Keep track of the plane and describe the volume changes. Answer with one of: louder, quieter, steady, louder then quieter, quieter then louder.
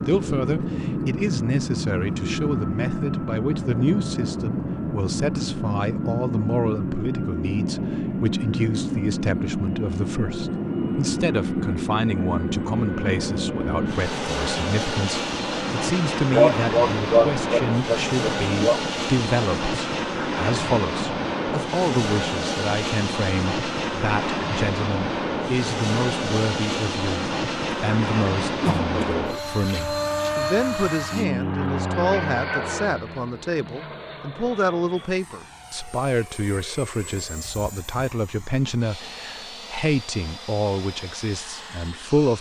quieter.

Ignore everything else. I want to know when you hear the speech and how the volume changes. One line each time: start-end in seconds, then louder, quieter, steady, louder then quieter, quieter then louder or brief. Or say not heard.
0.1-42.3 steady.